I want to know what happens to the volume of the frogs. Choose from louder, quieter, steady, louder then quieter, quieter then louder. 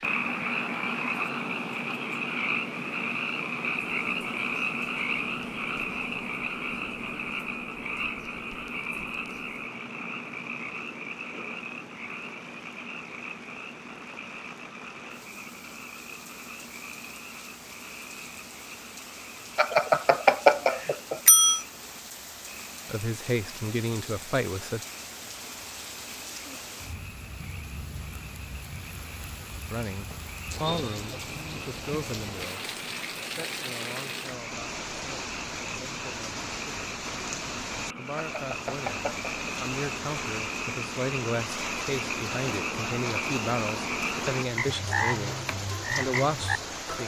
quieter then louder.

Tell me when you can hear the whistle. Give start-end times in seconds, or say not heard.
not heard.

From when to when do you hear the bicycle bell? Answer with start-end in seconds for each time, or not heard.
19.6-21.6, 38.1-39.3.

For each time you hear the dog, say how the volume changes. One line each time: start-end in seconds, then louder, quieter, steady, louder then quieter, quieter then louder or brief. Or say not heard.
not heard.